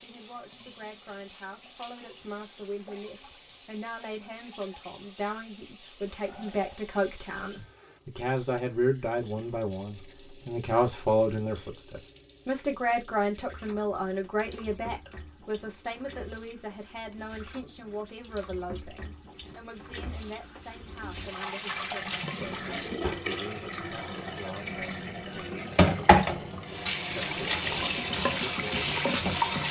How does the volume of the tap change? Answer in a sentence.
The loudness of the tap goes up.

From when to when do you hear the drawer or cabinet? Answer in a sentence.
You can hear the drawer or cabinet from 22.4 to 23.3 s.